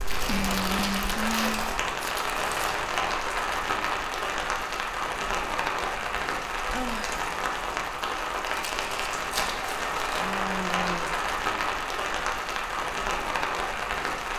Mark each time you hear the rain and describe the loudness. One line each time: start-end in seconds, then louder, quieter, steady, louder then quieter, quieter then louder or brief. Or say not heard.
0.0-14.3 steady.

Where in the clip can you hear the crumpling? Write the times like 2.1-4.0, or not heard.
0.1-2.8, 8.4-10.3.